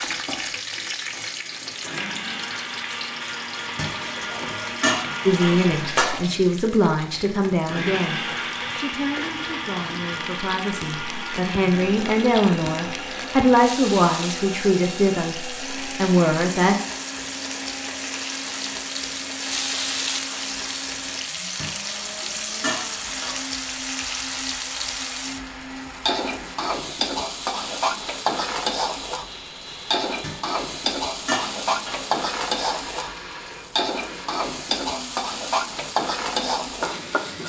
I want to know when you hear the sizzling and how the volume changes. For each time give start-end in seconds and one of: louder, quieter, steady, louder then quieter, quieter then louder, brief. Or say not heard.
0.0-37.4 louder.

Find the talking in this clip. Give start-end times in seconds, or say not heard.
5.2-16.8.